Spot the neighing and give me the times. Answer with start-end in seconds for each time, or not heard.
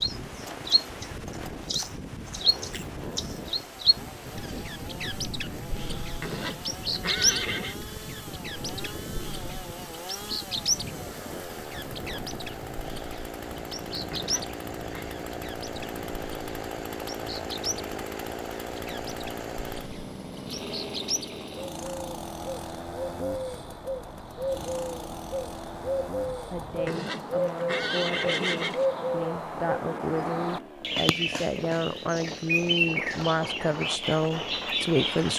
6.2-7.8, 14.1-15.1, 26.9-28.9.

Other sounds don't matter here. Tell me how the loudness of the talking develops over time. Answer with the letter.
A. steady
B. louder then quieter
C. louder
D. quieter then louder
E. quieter
C.